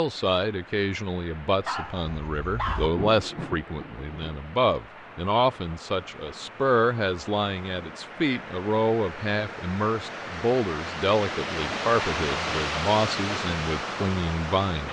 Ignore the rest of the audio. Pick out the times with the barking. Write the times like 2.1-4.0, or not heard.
1.6-2.9.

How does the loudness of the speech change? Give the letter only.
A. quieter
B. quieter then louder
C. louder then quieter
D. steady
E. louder
D.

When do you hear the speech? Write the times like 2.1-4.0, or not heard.
0.0-14.8.